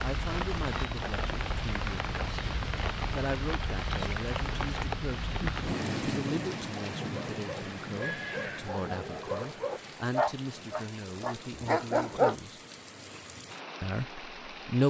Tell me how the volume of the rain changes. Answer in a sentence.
The volume of the rain goes down.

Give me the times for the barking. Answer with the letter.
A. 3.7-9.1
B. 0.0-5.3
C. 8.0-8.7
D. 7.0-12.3
D.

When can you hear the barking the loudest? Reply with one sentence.
The loudest moment of the barking is at 12 seconds.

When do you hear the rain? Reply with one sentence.
You can hear the rain from 0.0 to 14.8 s.